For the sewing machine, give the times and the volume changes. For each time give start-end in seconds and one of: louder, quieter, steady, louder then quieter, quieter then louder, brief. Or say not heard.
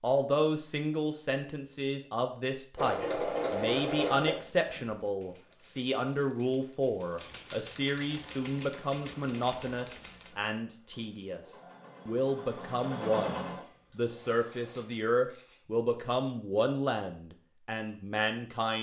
2.8-5.0 brief
8.1-14.8 quieter then louder.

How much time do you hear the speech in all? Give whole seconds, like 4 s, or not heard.
19 s.